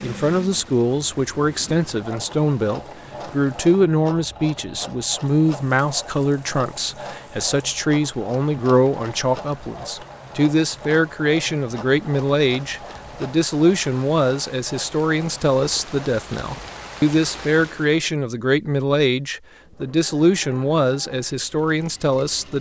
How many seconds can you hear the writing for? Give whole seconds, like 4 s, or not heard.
not heard.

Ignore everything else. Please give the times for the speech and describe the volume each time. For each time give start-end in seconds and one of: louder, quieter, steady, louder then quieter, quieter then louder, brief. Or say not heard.
0.0-22.5 steady.